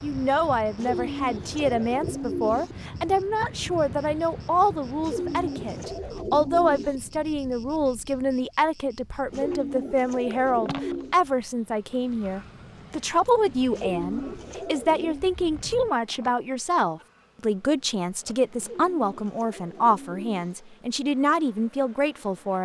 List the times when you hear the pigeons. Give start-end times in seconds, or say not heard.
0.8-2.8, 5.0-7.0, 9.3-11.2, 13.7-15.2, 18.6-20.6.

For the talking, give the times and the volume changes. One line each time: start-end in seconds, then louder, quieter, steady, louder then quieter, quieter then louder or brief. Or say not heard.
0.0-22.6 steady.